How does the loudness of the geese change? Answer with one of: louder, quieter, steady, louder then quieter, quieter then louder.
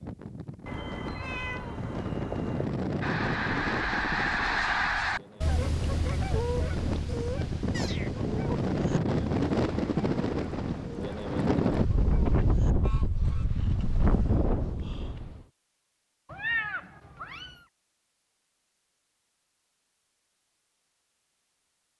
quieter.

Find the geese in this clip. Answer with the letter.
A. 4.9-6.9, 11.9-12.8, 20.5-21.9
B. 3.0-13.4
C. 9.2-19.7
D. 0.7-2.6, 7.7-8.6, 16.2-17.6
B.